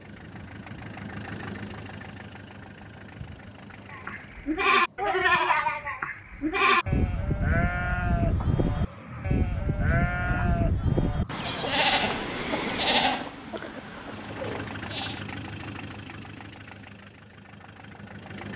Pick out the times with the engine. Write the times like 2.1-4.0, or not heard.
0.0-4.6, 13.9-18.5.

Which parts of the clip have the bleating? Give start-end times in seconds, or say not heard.
3.9-15.2.